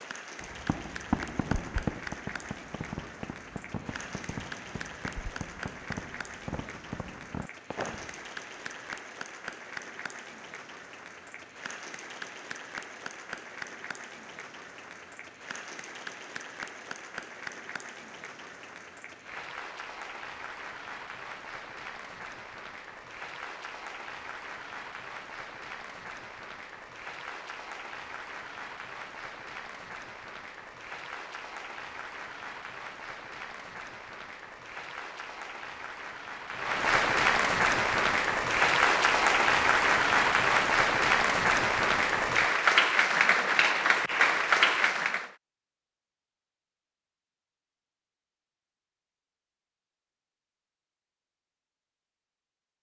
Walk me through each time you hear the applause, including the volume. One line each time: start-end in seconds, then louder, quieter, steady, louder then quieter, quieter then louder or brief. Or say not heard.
0.0-45.3 louder.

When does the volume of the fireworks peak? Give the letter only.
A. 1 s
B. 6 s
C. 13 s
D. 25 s
A.